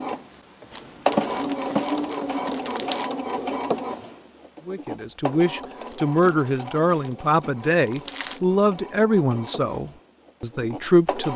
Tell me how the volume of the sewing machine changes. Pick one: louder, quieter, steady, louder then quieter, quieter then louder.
quieter.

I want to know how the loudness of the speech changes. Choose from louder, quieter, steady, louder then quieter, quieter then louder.
quieter.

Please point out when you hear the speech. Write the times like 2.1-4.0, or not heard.
4.7-11.3.